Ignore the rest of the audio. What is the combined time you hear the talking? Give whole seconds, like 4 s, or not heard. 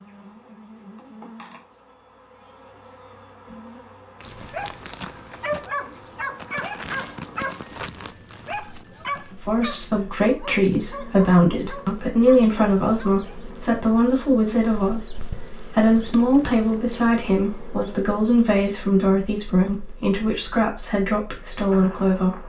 13 s.